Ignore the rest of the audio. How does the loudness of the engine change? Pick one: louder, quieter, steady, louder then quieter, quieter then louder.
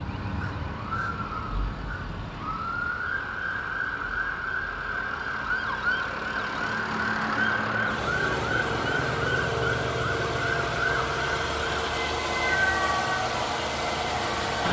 louder.